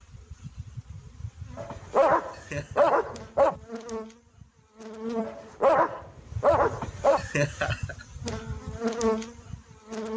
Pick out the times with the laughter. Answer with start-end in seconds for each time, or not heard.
2.3-3.1, 7.2-8.6.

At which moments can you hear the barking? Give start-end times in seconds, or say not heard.
1.6-3.5, 5.2-7.2.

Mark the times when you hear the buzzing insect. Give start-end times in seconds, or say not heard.
0.0-10.1.